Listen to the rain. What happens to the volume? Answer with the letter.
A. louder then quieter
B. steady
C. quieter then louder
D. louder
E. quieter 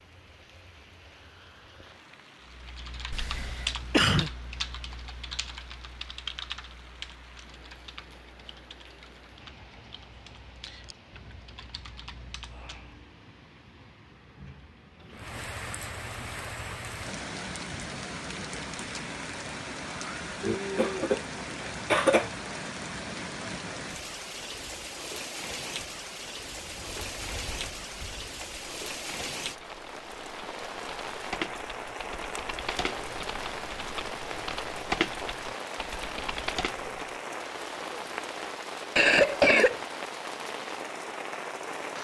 D.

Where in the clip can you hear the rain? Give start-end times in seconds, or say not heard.
0.0-41.9.